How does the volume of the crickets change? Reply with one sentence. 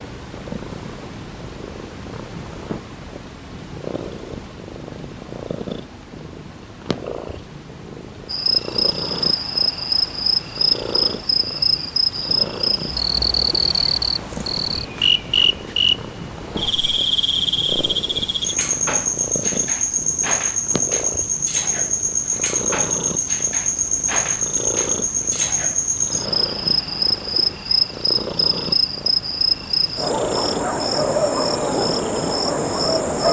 The loudness of the crickets stays about the same.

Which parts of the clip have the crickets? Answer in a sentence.
The crickets can be heard from 8.2 to 33.2 s.